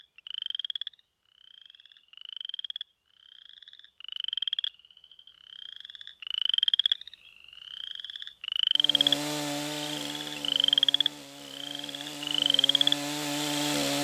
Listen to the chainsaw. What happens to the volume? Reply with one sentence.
The volume of the chainsaw goes down, then up.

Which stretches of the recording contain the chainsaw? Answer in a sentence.
The chainsaw can be heard from 8.8 to 13.9 s.